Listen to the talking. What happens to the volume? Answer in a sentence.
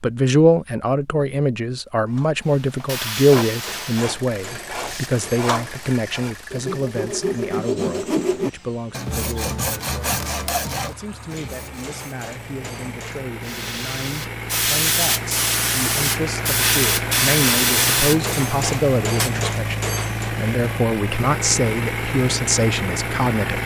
The volume of the talking goes down, then up.